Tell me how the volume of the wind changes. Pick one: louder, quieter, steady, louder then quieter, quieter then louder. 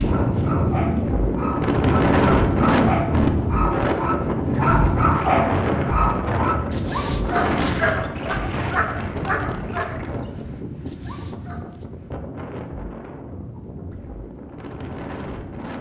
quieter.